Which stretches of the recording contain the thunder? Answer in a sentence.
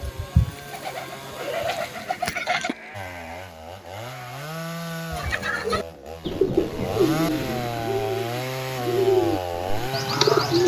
You can't hear the thunder here.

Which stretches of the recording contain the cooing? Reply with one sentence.
You can hear the cooing from 0.0 to 2.8 s and from 5.1 to 10.6 s.